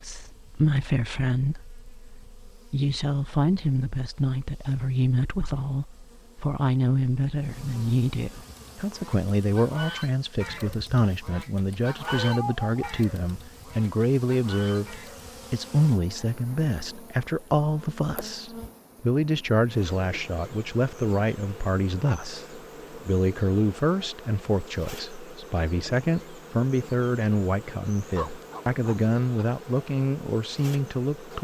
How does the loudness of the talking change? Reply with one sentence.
The loudness of the talking stays about the same.